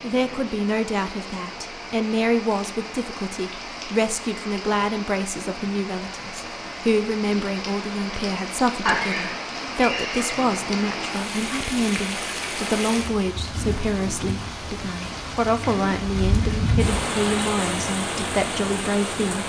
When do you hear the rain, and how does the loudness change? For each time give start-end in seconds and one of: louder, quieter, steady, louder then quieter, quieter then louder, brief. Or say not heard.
0.0-19.4 louder.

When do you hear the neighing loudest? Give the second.
9 s.